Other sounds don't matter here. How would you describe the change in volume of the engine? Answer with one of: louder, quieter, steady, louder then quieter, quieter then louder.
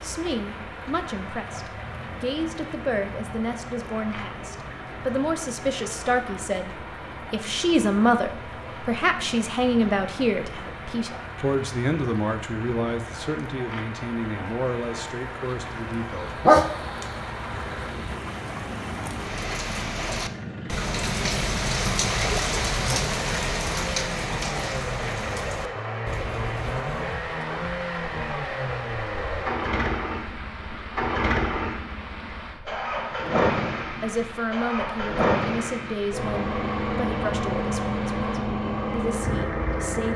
louder.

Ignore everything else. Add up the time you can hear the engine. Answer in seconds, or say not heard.
40 s.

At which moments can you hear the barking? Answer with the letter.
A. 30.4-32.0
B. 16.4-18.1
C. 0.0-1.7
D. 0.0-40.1
B.